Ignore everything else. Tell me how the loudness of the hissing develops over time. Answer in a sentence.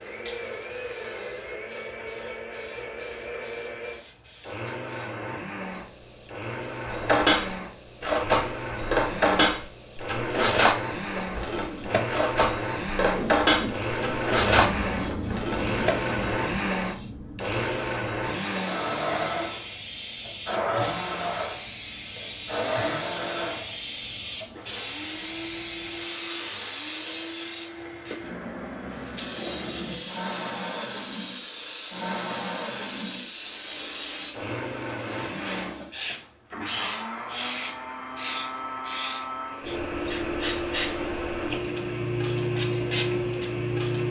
The volume of the hissing goes up.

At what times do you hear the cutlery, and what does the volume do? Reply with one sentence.
The cutlery can be heard from 6.9 to 15.9 s, at a steady volume.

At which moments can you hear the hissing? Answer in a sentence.
You can hear the hissing from 0.0 to 44.0 s.